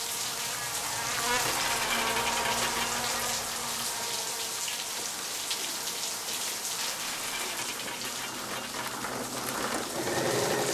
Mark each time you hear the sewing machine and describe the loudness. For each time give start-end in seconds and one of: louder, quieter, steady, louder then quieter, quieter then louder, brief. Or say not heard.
4.7-10.7 louder.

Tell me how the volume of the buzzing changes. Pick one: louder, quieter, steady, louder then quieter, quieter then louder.
quieter.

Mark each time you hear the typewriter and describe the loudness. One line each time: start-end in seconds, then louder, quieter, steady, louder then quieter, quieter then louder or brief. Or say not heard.
not heard.